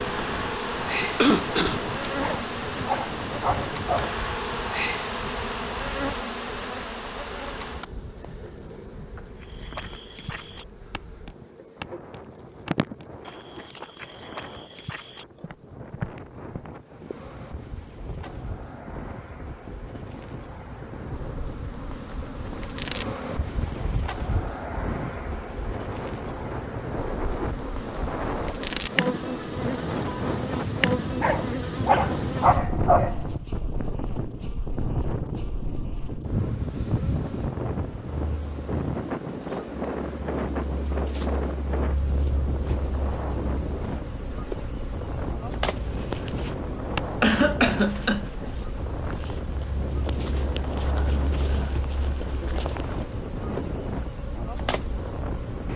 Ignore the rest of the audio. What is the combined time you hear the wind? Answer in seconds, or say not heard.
56 s.